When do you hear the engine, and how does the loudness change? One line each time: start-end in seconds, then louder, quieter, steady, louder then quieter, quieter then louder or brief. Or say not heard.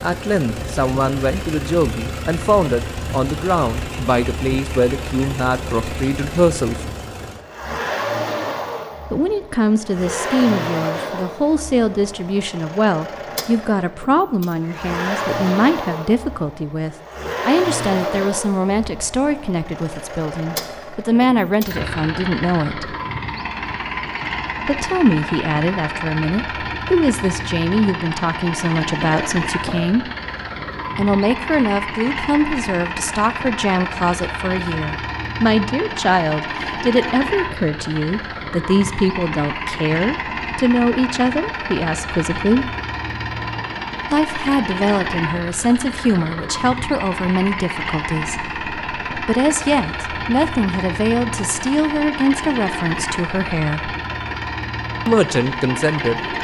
0.0-56.3 steady.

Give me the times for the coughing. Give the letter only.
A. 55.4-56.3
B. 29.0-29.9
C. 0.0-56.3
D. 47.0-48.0
B.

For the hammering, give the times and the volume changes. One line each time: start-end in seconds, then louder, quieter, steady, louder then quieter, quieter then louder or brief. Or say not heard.
not heard.